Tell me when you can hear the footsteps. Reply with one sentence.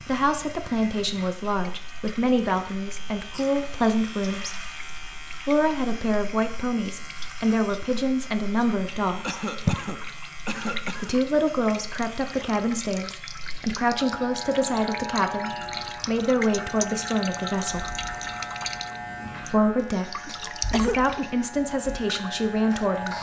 You can't hear the footsteps here.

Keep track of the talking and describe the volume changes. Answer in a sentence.
The loudness of the talking stays about the same.